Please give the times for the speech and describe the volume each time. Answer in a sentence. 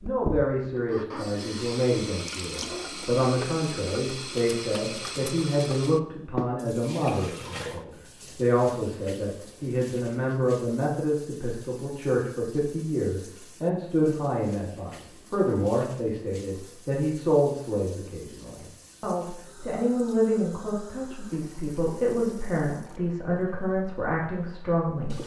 The speech can be heard from 0.0 to 25.2 s, at a steady volume.